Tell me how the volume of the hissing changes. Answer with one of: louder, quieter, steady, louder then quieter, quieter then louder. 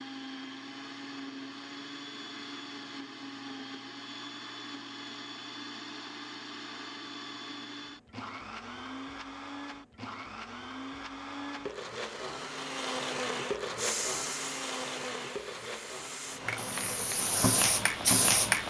quieter then louder.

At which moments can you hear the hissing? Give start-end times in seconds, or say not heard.
13.8-18.6.